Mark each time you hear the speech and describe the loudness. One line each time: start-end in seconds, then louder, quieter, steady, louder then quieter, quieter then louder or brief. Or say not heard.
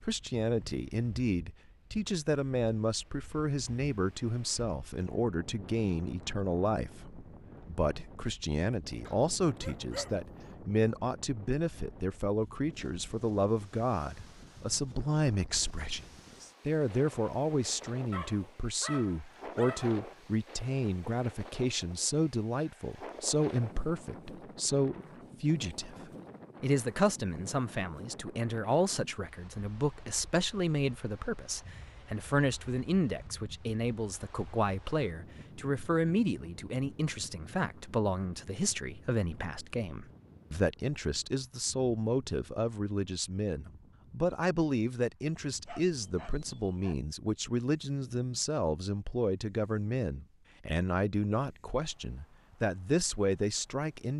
0.0-16.1 steady
16.6-54.1 steady.